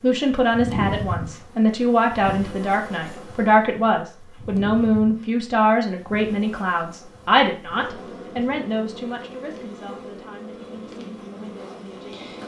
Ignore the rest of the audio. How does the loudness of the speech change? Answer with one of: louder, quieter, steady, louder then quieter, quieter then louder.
quieter.